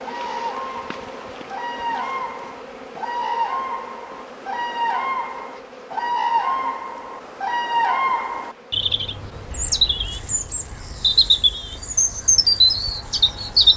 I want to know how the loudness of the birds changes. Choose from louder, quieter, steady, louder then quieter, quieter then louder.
louder.